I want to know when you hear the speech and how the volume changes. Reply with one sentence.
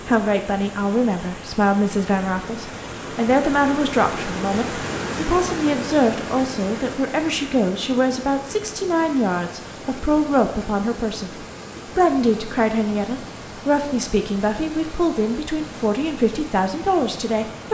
You can hear the speech from 0.0 to 17.6 s, at a steady volume.